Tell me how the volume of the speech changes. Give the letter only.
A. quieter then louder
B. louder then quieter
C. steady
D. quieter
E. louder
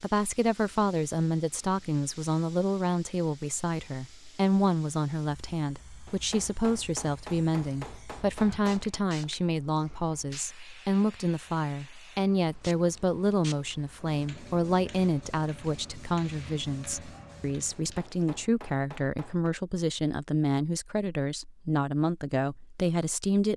C.